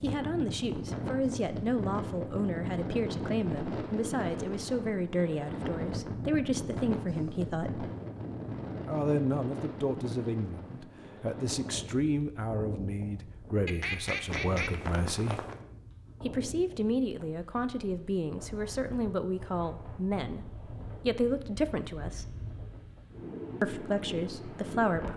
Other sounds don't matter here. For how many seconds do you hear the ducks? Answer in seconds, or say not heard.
2 s.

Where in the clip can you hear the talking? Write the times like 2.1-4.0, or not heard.
0.0-7.9, 8.8-15.4, 16.2-20.4, 21.1-22.2, 23.6-25.1.